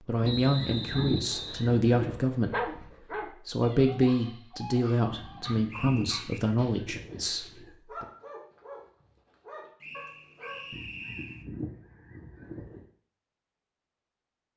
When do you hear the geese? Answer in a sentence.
You can hear the geese from 0.2 to 2.1 s, from 5.1 to 7.7 s and from 10.7 to 12.8 s.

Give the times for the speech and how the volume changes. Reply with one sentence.
The speech can be heard briefly from 0.1 to 2.8 s; and from 3.5 to 8.1 s, getting quieter.